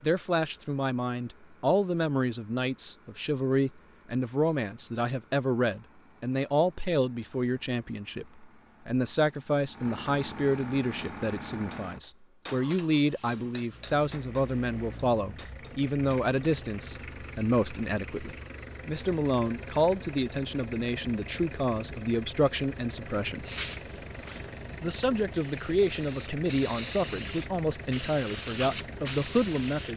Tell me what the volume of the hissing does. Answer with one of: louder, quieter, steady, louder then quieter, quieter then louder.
louder.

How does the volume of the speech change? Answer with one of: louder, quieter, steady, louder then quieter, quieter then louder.
steady.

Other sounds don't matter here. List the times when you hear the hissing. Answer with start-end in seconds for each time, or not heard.
23.4-29.9.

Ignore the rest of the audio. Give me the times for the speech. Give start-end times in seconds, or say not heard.
0.0-23.4, 24.8-29.9.